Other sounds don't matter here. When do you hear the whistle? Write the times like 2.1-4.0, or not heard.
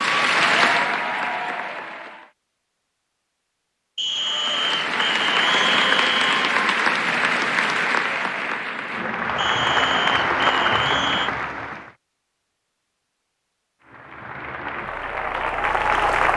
4.0-6.3, 9.3-11.3.